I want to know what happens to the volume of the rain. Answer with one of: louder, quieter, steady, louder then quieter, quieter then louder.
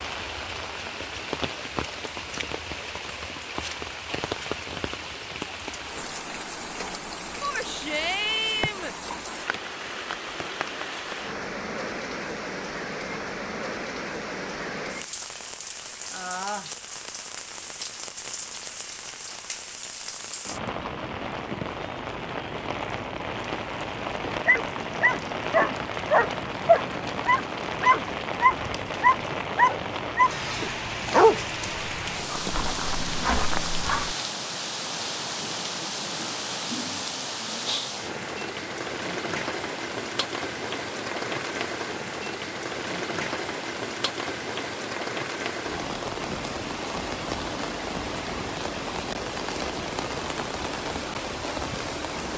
steady.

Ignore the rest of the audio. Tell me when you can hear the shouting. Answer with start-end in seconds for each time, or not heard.
7.4-8.9.